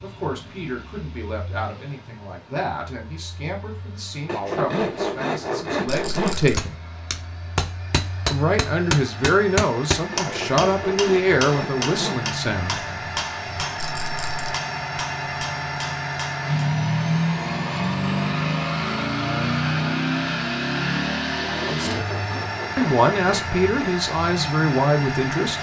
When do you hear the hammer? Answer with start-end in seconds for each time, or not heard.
6.5-16.4.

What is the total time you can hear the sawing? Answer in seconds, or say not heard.
7 s.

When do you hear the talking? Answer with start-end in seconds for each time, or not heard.
0.0-6.8, 8.3-12.8, 21.6-22.1, 22.8-25.5.